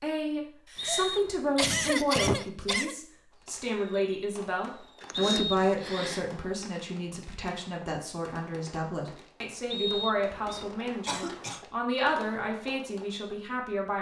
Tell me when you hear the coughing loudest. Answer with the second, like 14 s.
2 s.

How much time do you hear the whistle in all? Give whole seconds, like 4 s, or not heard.
3 s.